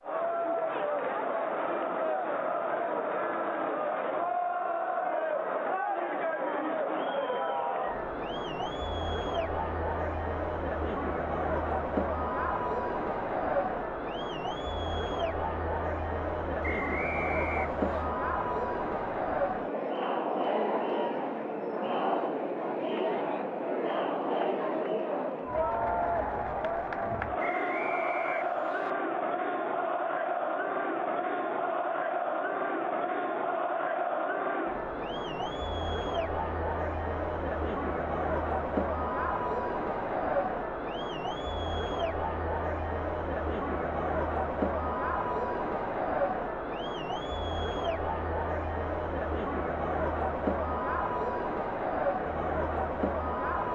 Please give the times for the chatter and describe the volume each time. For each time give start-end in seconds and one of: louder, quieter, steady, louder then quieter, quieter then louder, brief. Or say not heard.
0.0-53.7 steady.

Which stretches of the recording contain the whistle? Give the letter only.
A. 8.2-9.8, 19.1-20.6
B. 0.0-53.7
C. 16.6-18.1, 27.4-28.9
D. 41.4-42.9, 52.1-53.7
C.